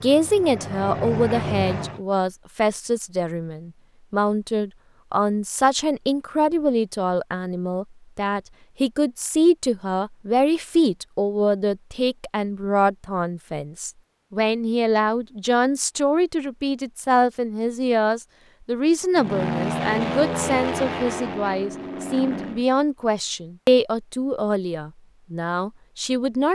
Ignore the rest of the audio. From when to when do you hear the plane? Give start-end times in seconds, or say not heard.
0.0-2.0, 19.1-22.6.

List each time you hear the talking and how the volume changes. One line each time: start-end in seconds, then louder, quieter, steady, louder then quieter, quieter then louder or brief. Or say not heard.
0.0-26.5 steady.